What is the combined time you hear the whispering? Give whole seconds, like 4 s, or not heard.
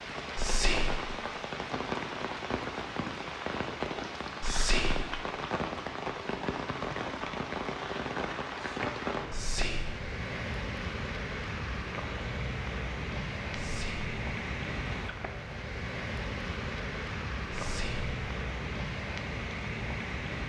3 s.